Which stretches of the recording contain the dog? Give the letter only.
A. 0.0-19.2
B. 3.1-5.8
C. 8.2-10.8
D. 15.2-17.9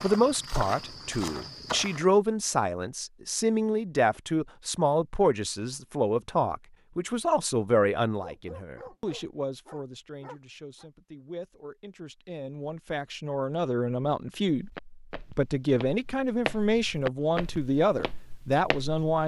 C.